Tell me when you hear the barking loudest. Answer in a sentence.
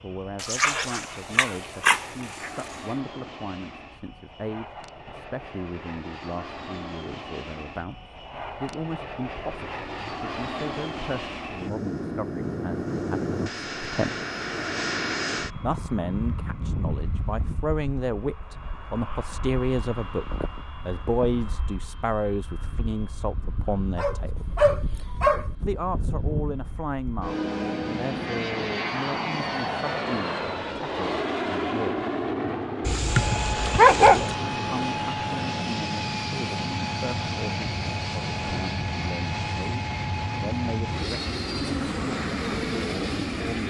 The volume of the barking peaks at 34 seconds.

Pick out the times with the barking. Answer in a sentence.
You can hear the barking from 0.4 to 2.5 s, from 23.9 to 25.4 s and from 32.9 to 34.4 s.